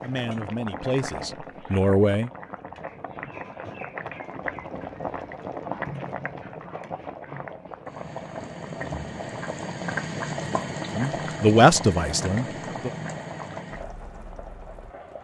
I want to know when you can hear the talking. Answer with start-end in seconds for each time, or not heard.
0.0-2.3, 10.9-12.9.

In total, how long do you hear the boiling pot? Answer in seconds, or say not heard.
15 s.